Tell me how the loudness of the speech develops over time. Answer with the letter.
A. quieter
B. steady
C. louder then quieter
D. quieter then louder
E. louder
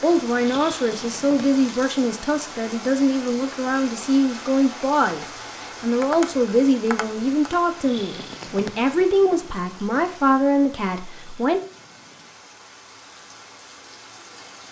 B.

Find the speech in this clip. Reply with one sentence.
You can hear the speech from 0.0 to 11.6 s.